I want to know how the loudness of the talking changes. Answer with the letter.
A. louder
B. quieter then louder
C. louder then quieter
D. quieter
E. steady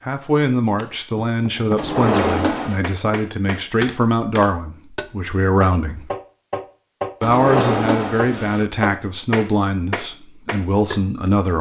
E.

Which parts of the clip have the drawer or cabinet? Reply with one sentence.
The drawer or cabinet can be heard from 1.8 to 2.9 s and from 7.2 to 8.7 s.